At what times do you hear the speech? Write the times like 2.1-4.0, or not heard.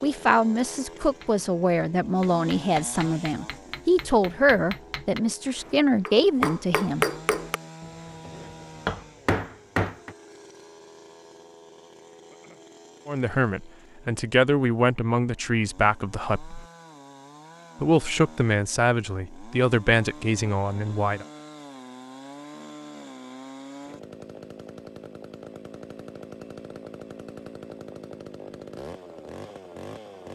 0.0-7.0, 13.1-16.6, 17.8-21.2.